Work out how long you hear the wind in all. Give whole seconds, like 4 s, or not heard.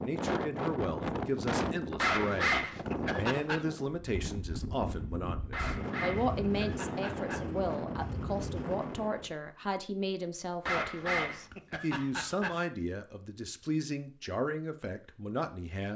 9 s.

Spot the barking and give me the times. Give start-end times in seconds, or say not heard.
1.9-3.6, 5.5-7.5, 10.7-12.6.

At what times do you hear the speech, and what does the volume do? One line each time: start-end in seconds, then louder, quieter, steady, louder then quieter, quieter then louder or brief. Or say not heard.
0.0-15.9 steady.